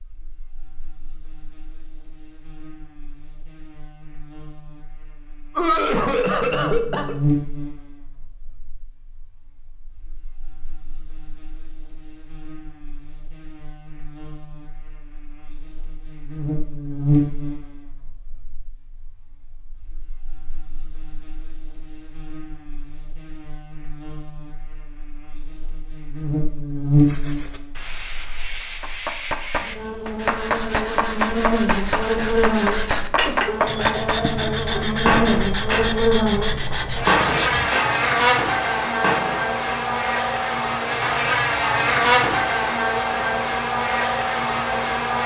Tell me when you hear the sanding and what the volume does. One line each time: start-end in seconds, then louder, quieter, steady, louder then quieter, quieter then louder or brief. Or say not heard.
27.0-37.8 louder.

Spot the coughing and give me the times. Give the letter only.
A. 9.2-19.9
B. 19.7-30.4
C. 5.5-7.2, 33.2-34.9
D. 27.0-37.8
C.